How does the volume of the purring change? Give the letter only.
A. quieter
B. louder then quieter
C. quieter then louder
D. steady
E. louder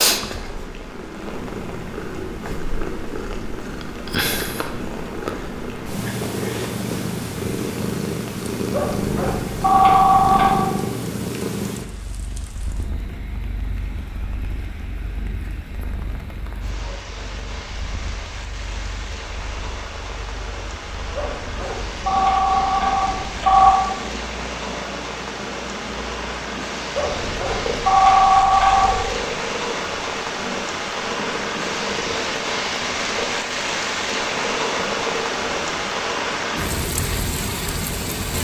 C.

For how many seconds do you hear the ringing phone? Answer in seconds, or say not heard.
7 s.